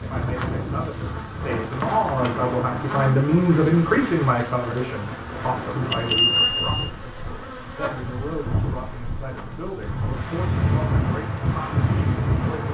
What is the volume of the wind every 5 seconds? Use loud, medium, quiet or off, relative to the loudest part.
medium, medium, loud.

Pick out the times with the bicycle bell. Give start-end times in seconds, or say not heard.
5.8-6.9.